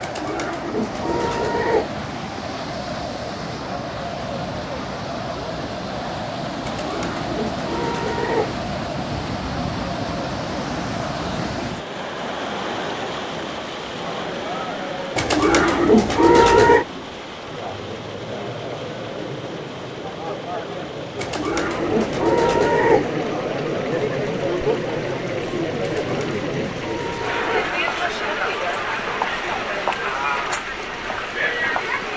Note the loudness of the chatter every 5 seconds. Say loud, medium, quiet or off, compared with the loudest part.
medium, medium, medium, medium, loud, loud, loud.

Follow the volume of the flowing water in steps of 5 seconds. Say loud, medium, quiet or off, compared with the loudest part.
loud, loud, loud, medium, medium, medium, medium.